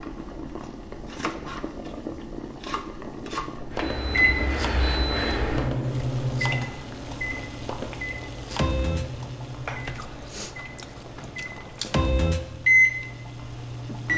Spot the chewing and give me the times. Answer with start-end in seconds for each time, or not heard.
9.8-12.1.